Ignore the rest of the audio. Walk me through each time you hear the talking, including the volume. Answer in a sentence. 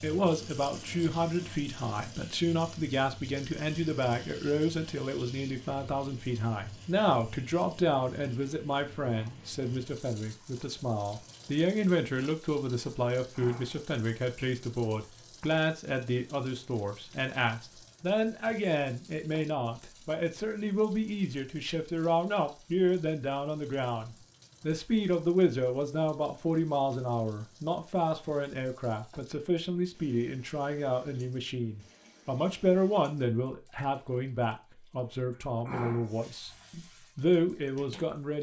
The talking can be heard from 0.0 to 38.3 s, at a steady volume.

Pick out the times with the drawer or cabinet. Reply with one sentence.
The drawer or cabinet can't be heard in this clip.